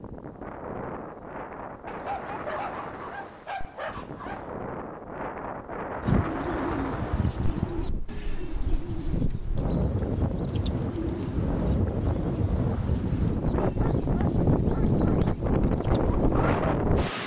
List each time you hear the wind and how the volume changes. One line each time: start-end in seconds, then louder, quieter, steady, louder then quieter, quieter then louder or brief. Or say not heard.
0.0-17.2 louder.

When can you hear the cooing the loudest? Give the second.
6 s.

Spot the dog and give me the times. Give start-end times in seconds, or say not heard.
1.9-4.5, 13.8-15.3.